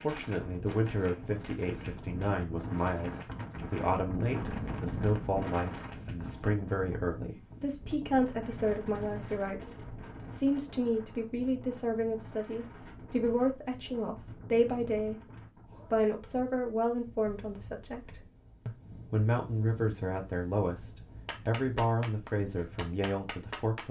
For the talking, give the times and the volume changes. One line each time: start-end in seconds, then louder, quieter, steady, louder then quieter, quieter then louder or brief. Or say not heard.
0.0-23.8 steady.